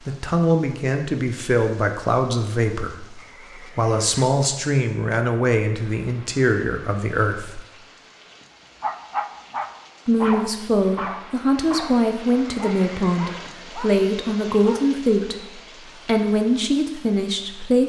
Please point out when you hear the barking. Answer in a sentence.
The barking can be heard from 8.8 to 14.8 s.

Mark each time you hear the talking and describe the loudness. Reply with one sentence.
You can hear the talking from 0.1 to 7.6 s, at a steady volume; from 10.1 to 15.3 s, at a steady volume; and briefly from 16.1 to 17.8 s.